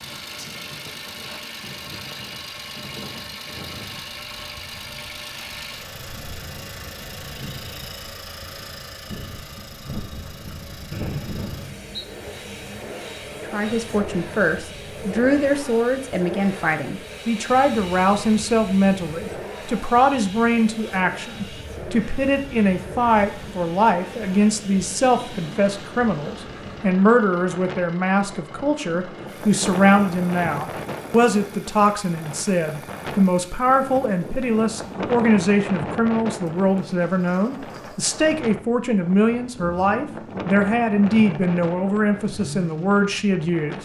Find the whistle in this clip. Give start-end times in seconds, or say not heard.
10.9-11.9.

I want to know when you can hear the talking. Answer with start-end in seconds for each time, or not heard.
13.4-43.7.